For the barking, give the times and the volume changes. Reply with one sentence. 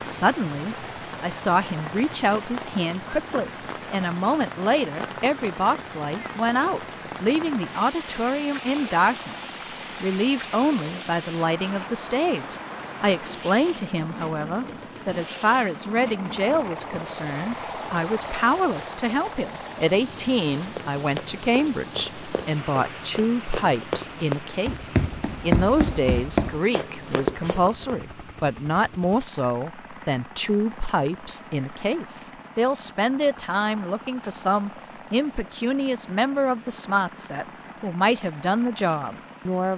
You can't hear the barking here.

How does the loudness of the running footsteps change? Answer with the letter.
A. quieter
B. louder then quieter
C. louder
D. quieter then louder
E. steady
C.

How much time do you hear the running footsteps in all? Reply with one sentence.
You can hear the running footsteps for 7 seconds altogether.